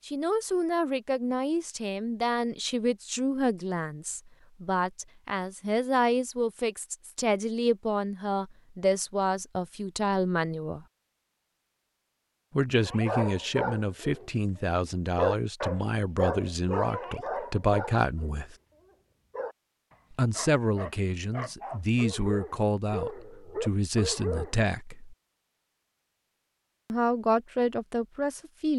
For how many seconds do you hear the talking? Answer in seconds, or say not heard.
24 s.